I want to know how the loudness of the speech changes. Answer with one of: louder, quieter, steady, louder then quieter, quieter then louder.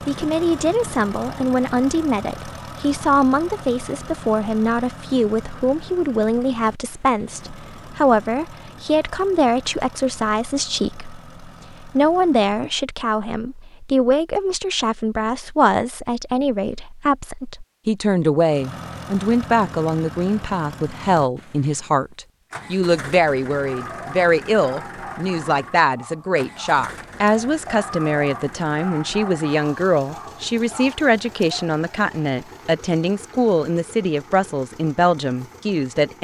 steady.